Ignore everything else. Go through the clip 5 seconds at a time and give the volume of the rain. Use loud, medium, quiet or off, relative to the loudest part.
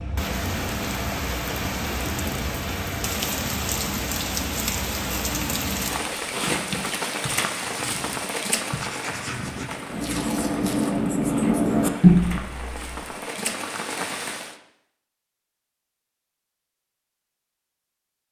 loud, loud, medium, off.